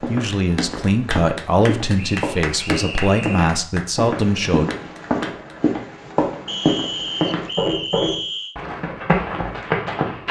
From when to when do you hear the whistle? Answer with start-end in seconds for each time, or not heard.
1.9-3.5, 6.5-8.6.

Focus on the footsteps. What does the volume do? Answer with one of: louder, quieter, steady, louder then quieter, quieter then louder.
louder.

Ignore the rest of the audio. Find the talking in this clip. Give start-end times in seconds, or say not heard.
0.0-4.7.